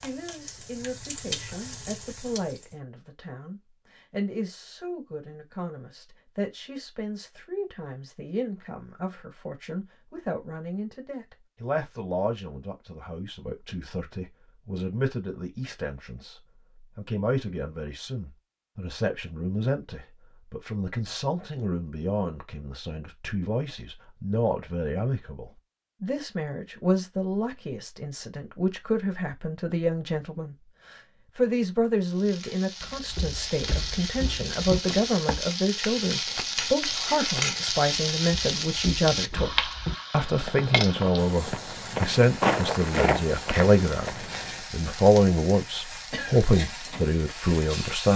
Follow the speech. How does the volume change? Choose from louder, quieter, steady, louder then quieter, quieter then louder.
louder.